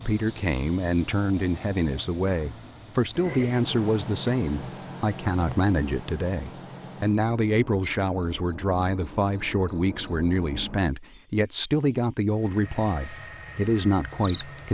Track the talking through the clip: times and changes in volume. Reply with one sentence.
The talking can be heard from 0.1 to 14.6 s, at a steady volume.